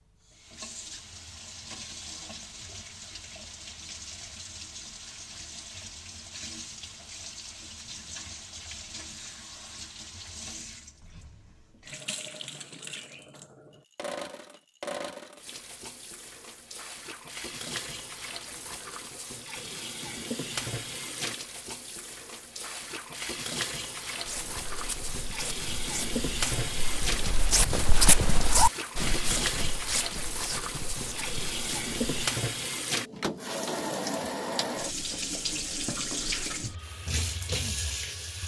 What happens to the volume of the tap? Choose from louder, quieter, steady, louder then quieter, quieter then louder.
louder.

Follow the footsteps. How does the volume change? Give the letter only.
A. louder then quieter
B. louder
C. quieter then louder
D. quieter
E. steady
A.